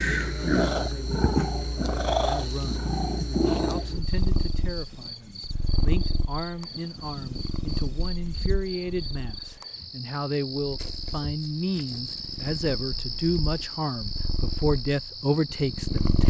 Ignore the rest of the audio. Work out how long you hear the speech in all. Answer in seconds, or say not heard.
16 s.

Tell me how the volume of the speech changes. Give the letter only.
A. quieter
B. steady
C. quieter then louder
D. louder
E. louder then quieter
D.